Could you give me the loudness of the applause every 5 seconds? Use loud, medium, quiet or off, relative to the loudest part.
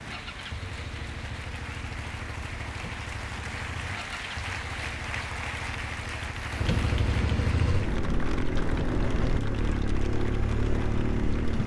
loud, loud, medium.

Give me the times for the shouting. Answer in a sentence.
The shouting can't be heard in this clip.